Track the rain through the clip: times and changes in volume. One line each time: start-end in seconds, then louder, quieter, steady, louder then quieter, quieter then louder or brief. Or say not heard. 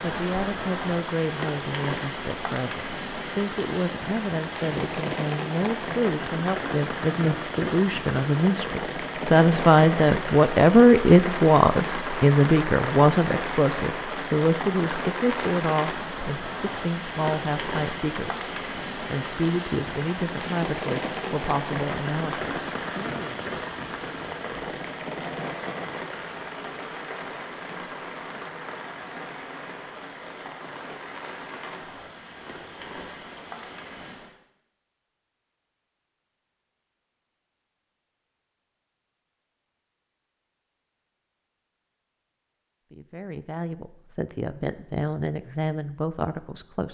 0.0-34.4 quieter.